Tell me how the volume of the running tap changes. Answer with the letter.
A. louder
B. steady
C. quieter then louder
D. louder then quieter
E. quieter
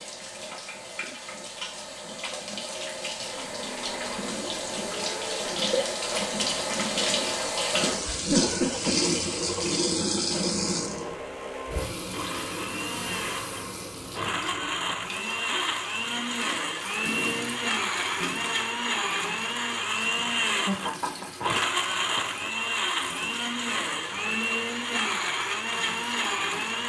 D.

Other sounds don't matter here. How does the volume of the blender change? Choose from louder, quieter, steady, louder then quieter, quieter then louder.
louder.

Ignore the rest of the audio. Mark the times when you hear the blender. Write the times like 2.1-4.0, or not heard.
3.3-26.8.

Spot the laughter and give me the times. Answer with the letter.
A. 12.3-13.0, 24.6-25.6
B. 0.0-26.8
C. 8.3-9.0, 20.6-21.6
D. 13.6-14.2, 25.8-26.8
C.